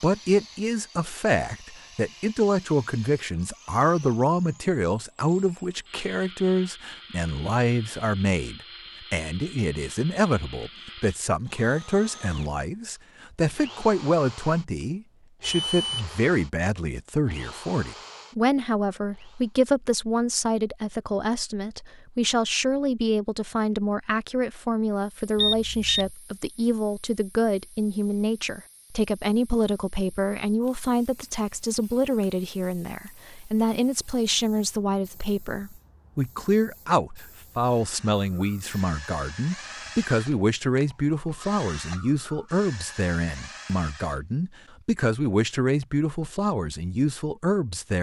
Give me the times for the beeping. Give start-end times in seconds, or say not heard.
15.4-16.1, 25.4-26.1.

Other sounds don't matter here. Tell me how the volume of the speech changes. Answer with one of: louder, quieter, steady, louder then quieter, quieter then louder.
steady.